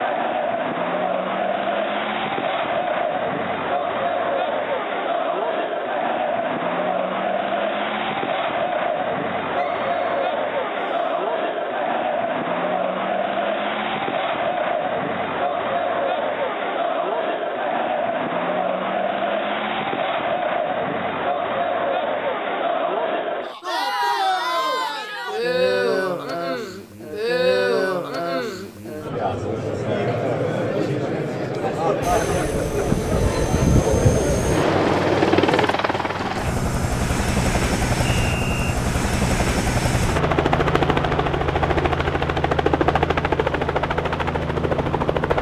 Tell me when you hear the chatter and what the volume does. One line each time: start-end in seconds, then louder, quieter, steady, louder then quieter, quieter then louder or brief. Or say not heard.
0.0-35.7 steady.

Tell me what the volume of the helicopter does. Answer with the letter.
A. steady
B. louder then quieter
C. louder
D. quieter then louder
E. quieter
A.